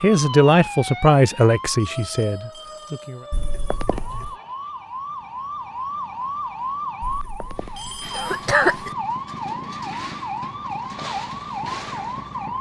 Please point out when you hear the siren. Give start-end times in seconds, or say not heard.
0.0-12.5.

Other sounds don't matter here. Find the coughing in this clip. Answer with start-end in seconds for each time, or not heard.
3.3-4.3, 7.0-8.9.